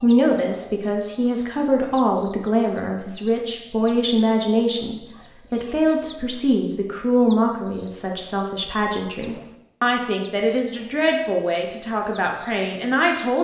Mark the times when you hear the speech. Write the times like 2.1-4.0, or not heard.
0.0-13.3.